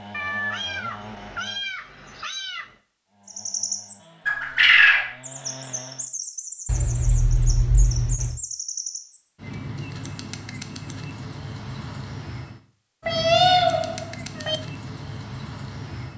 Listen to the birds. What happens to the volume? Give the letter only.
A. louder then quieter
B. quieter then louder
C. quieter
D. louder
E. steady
C.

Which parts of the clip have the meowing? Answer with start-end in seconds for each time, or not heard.
0.1-2.8, 6.7-8.4, 13.1-14.6.